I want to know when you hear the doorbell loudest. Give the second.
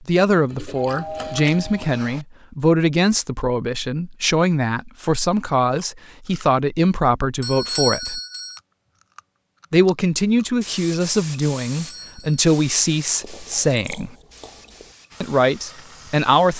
8 s.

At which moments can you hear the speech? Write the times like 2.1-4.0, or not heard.
0.1-8.2, 9.7-14.2, 15.2-16.5.